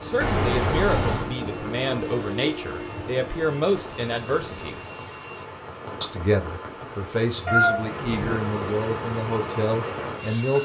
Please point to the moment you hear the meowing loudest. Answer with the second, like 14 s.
8 s.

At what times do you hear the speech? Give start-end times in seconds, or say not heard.
0.0-4.8, 6.0-10.6.